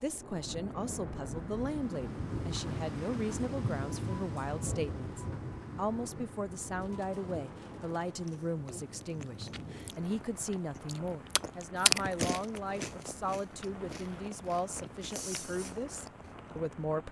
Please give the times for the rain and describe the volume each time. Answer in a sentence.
You can hear the rain from 0.0 to 17.0 s, getting quieter.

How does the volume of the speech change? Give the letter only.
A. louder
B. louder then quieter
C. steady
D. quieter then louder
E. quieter
C.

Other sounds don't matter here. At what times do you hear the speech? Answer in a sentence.
You can hear the speech from 0.0 to 17.0 s.